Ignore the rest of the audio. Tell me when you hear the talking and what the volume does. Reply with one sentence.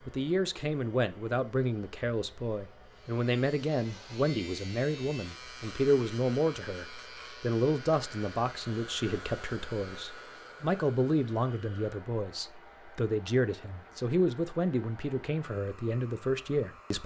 You can hear the talking from 0.1 to 17.0 s, at a steady volume.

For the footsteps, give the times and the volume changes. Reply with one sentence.
You can't hear the footsteps here.